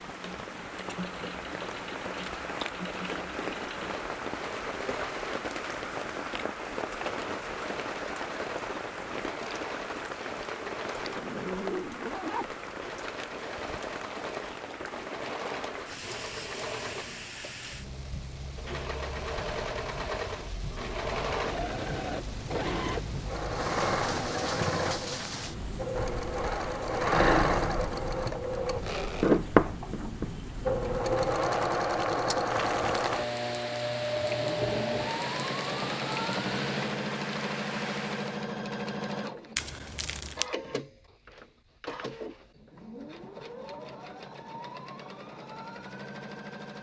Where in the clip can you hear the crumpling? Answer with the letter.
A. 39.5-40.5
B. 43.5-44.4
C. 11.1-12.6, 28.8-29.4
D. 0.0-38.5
A.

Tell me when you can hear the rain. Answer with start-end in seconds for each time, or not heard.
0.0-38.5.